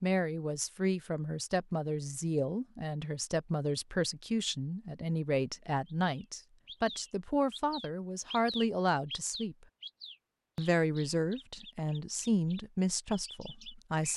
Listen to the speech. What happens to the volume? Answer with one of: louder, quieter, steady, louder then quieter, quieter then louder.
steady.